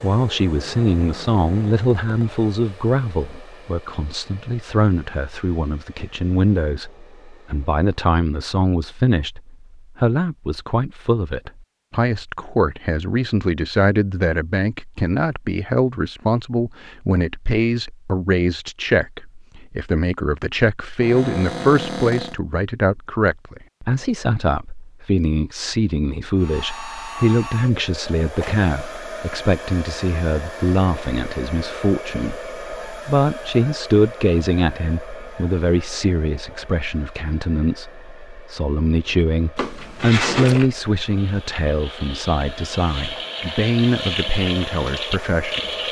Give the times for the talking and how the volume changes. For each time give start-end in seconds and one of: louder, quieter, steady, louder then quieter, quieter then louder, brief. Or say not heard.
0.0-45.7 steady.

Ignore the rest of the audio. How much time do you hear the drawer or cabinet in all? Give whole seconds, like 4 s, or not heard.
4 s.